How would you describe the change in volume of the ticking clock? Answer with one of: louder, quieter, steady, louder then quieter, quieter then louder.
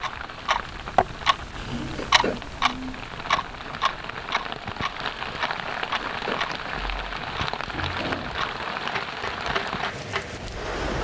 quieter.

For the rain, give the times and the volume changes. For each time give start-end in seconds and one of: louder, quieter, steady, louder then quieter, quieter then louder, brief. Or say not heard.
0.0-10.9 louder.